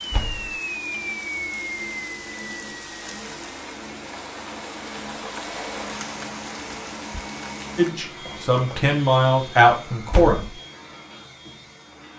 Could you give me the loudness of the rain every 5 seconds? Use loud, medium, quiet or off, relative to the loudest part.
loud, loud, off.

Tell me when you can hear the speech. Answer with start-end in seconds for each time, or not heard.
7.8-10.4.